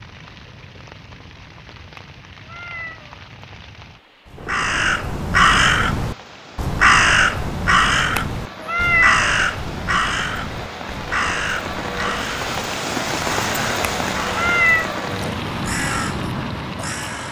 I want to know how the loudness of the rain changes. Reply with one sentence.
The volume of the rain goes up.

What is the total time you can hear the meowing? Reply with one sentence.
The meowing can be heard for 4 seconds in total.